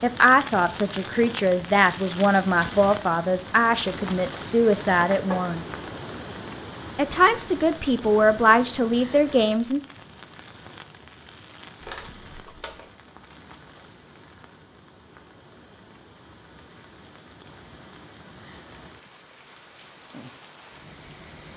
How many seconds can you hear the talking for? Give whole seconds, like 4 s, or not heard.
9 s.